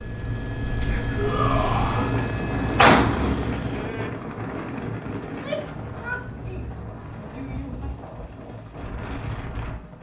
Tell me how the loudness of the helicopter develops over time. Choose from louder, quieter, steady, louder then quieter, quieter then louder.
quieter.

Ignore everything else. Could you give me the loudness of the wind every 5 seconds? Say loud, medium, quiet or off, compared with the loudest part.
loud, medium.